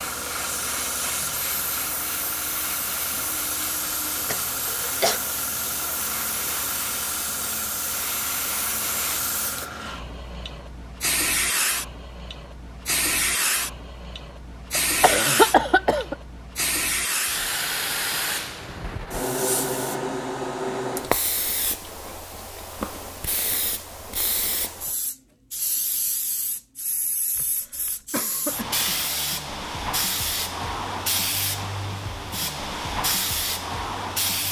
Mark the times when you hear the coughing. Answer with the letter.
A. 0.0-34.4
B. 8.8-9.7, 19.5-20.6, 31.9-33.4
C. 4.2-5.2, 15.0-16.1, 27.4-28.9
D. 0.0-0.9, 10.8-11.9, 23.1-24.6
C.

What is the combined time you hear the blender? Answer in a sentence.
The blender can't be heard in this clip.